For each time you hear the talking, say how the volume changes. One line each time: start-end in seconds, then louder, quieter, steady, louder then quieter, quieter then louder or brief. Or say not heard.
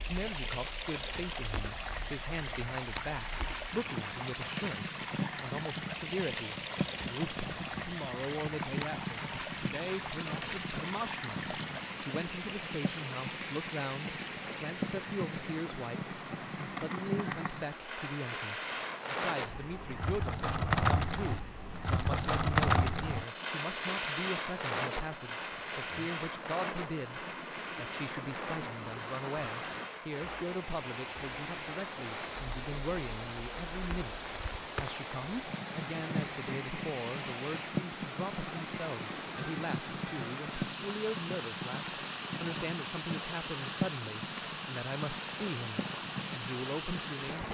0.0-47.4 steady.